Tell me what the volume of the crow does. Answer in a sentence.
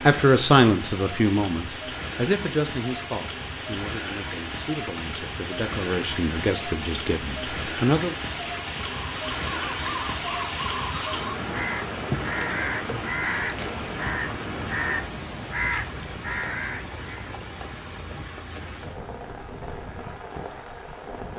The loudness of the crow stays about the same.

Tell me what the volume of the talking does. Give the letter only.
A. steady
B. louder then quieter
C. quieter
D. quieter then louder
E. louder
D.